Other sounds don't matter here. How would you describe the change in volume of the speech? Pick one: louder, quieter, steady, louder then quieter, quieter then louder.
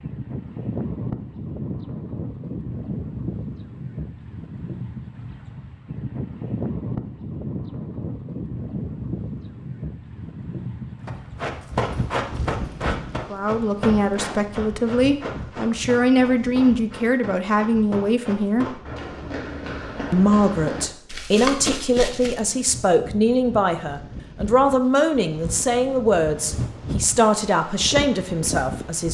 steady.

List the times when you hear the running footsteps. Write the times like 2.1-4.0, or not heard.
11.1-22.6.